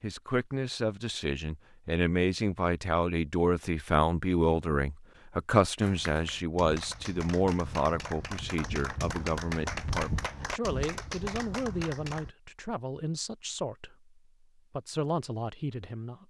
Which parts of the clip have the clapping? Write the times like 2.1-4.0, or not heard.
5.8-12.3.